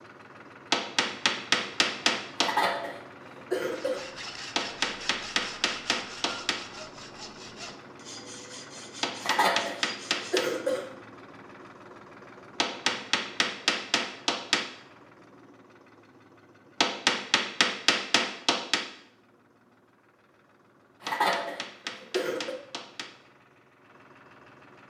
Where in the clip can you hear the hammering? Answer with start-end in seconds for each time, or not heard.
0.7-2.5, 4.5-6.6, 9.0-10.5, 12.6-14.7, 16.8-18.9, 21.1-23.1.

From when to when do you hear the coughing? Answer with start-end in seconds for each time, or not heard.
2.4-4.0, 9.2-10.8, 21.0-22.6.